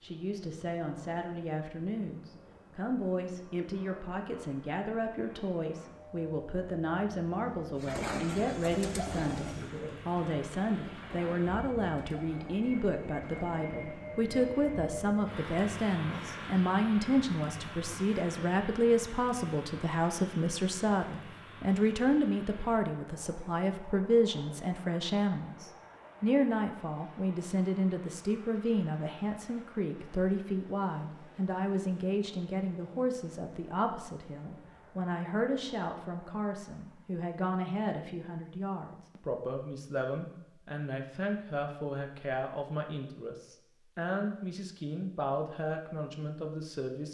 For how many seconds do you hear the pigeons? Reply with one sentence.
You can hear the pigeons for 6 seconds altogether.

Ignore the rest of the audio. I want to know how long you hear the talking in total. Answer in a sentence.
The talking can be heard for 47 seconds in total.